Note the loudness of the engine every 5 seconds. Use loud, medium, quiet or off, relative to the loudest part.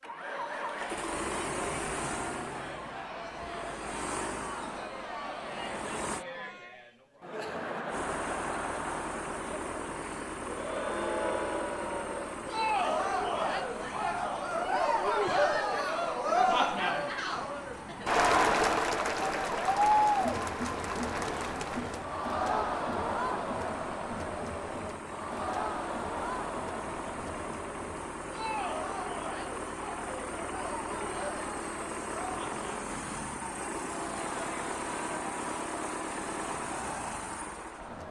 loud, loud, loud, medium, medium, loud, loud, loud.